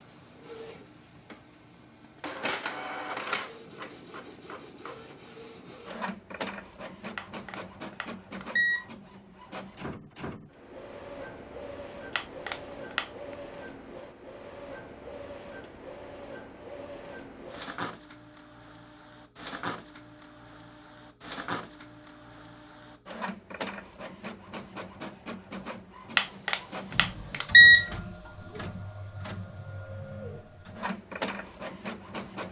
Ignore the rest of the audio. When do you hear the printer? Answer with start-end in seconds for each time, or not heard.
0.0-32.4.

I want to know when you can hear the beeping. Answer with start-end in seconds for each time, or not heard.
7.2-8.8, 12.2-13.1, 26.1-27.9.